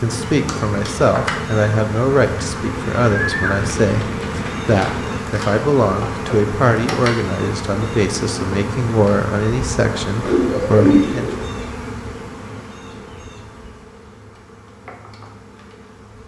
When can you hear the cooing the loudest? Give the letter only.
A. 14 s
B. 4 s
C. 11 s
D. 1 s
C.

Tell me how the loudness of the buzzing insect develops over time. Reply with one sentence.
The volume of the buzzing insect goes down.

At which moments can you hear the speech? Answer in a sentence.
You can hear the speech from 0.0 to 11.3 s.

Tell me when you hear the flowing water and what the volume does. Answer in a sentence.
You can't hear the flowing water here.